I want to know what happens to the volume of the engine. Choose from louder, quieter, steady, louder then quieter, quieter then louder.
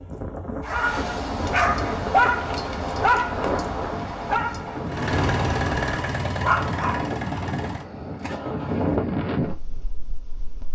quieter.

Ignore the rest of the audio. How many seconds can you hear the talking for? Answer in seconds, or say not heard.
not heard.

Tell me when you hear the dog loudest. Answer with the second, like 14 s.
2 s.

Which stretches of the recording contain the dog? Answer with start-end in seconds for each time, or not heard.
0.6-7.0.